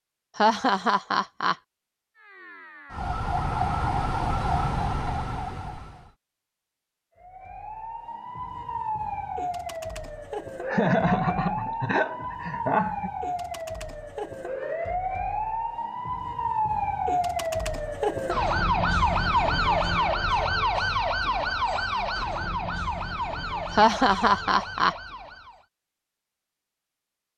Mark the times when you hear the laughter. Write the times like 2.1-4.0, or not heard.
0.3-1.6, 10.7-13.1, 23.8-24.9.